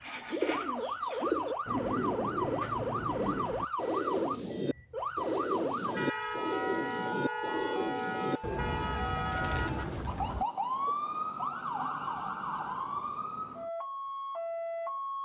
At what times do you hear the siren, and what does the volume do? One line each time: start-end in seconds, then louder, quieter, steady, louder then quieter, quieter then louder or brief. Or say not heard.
0.5-15.2 steady.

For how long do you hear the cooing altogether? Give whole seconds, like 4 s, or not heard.
11 s.